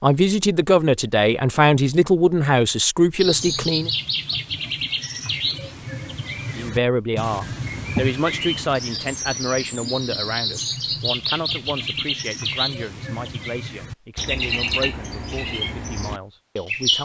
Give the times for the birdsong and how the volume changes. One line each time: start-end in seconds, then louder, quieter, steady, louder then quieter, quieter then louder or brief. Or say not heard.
3.1-17.0 steady.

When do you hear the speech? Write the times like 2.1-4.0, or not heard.
0.0-3.9, 6.5-17.0.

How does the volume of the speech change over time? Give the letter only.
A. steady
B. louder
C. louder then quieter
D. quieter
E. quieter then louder
D.